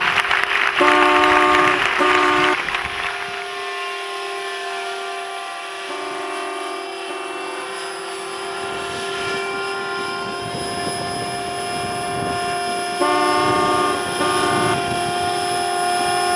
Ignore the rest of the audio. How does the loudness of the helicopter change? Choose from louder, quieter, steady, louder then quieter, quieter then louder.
louder.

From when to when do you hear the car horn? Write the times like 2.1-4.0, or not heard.
0.8-2.5, 5.8-7.7, 13.0-14.8.